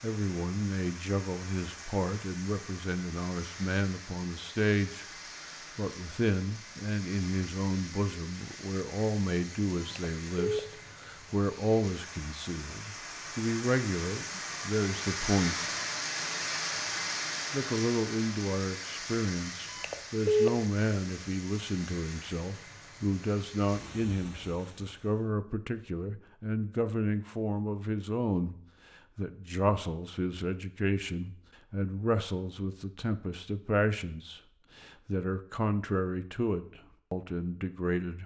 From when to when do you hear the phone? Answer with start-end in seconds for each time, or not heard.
9.8-10.6, 19.7-20.5.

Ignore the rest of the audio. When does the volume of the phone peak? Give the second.
20 s.